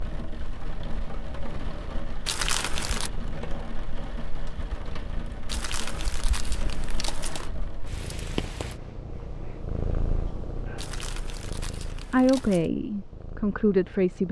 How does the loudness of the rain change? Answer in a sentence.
The volume of the rain stays about the same.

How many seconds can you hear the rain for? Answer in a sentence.
You can hear the rain for 9 seconds altogether.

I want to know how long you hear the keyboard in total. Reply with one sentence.
You can't hear the keyboard here.